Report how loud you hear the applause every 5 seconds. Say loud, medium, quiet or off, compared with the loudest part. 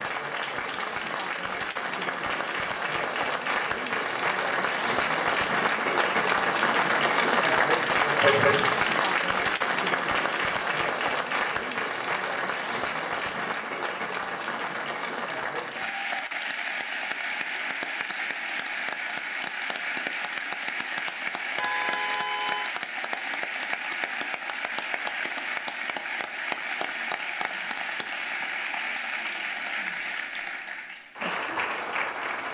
medium, loud, medium, medium, medium, medium, medium.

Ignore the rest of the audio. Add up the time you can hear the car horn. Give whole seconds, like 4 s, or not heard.
2 s.